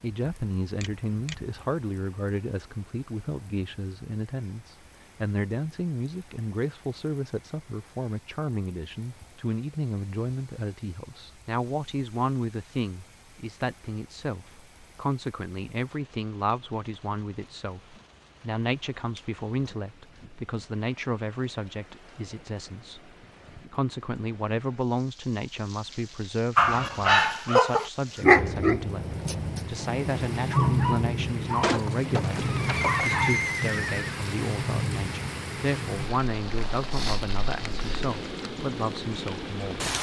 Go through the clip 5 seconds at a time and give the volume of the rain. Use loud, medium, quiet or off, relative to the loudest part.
quiet, quiet, quiet, quiet, quiet, medium, loud, medium.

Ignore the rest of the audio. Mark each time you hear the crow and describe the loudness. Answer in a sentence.
The crow can't be heard in this clip.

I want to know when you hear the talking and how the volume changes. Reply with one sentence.
The talking can be heard from 0.0 to 39.9 s, at a steady volume.